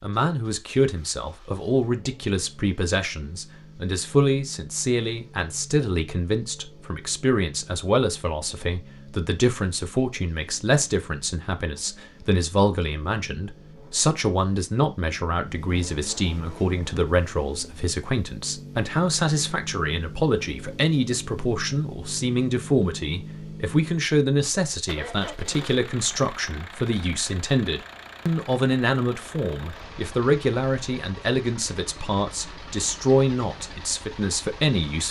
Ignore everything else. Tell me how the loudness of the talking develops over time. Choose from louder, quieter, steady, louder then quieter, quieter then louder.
steady.